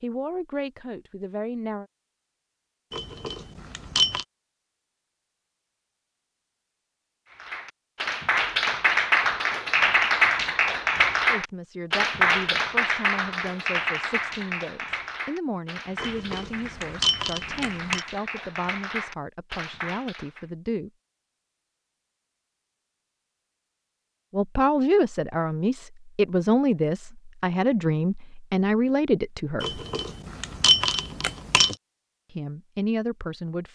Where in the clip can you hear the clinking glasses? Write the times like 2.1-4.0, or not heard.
2.9-4.2, 15.9-18.1, 29.6-31.8.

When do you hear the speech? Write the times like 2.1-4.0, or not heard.
0.0-1.9, 11.2-20.9, 24.3-29.8, 32.3-33.7.